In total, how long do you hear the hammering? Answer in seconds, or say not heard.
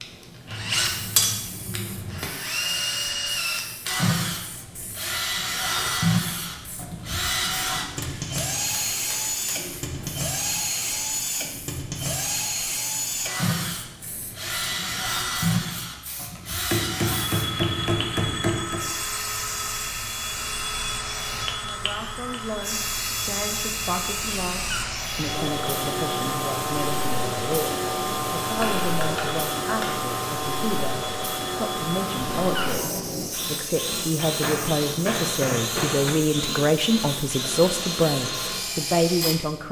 9 s.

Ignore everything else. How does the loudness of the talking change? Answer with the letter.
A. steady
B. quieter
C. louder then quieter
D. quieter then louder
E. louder
E.